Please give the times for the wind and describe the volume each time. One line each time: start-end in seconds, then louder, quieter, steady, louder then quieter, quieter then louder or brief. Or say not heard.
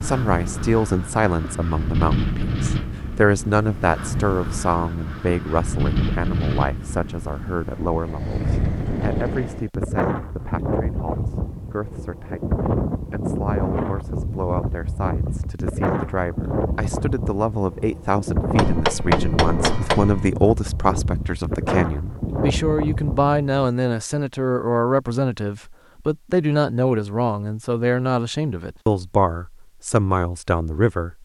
0.0-23.6 steady.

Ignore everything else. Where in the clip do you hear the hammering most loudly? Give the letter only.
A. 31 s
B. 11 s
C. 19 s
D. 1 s
C.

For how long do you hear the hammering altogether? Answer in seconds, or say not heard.
2 s.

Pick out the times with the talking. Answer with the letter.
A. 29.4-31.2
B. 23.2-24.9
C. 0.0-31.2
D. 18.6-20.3
C.